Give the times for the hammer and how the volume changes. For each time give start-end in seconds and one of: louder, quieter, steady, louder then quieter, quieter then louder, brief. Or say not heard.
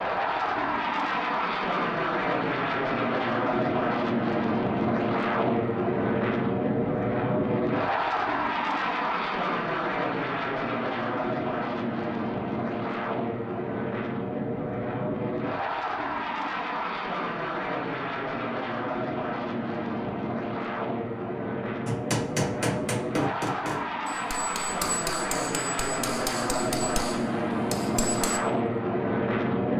21.9-28.4 quieter.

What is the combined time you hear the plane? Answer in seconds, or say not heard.
30 s.